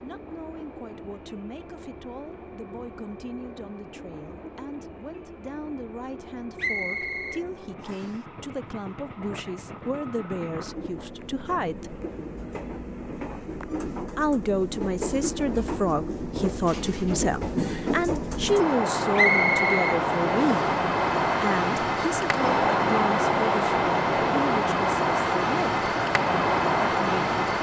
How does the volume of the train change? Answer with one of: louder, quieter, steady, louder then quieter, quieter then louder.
louder.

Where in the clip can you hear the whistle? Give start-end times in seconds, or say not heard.
6.5-8.2, 19.1-20.7.